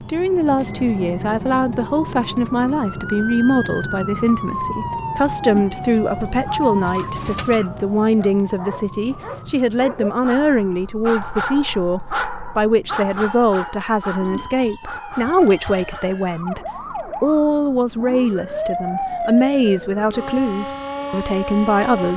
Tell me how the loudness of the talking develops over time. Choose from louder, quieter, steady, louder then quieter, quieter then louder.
steady.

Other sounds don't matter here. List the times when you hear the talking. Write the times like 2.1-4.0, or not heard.
0.0-22.1.